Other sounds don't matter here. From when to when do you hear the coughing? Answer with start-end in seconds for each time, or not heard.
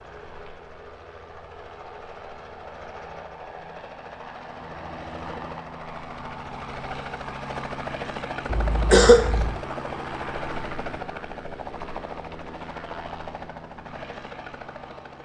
8.4-9.6.